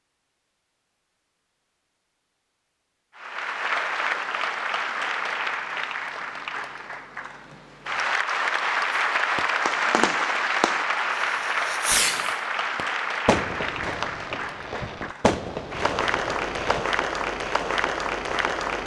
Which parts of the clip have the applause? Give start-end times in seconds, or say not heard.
3.1-18.8.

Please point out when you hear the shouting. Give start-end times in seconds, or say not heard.
not heard.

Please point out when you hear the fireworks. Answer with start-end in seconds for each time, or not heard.
9.3-16.9.